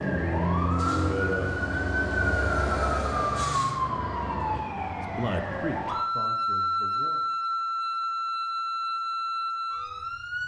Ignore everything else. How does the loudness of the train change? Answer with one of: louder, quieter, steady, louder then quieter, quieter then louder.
louder then quieter.